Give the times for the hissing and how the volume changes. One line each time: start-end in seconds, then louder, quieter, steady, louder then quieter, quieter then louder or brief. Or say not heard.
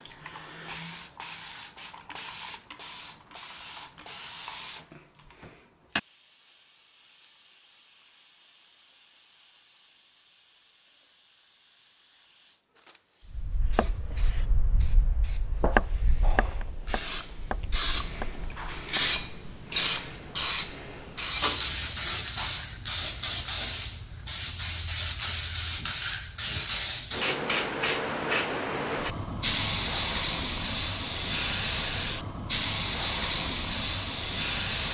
0.0-34.9 quieter then louder.